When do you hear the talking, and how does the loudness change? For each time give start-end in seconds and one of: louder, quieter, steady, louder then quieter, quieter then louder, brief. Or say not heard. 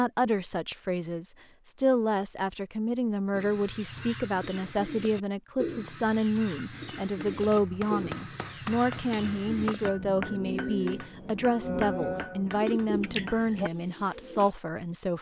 0.0-15.1 steady.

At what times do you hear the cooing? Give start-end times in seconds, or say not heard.
3.3-14.4.